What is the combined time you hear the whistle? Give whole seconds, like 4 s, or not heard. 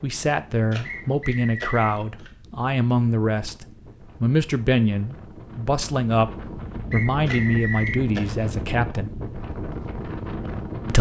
2 s.